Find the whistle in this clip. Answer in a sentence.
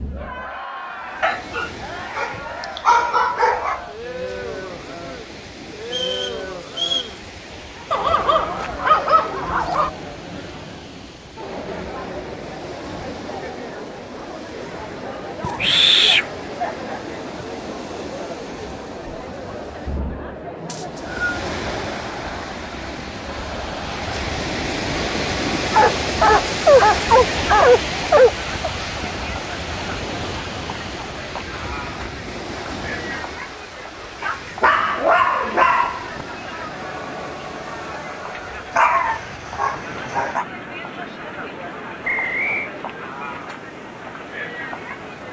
You can hear the whistle from 5.8 to 7.2 s, from 20.6 to 21.2 s and from 42.0 to 42.7 s.